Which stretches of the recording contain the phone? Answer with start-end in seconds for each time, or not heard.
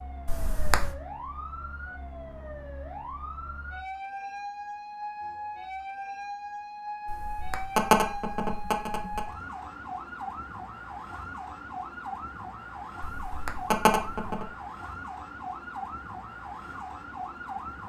0.2-0.9, 7.0-9.3, 13.1-14.5.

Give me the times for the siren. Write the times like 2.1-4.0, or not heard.
0.0-17.8.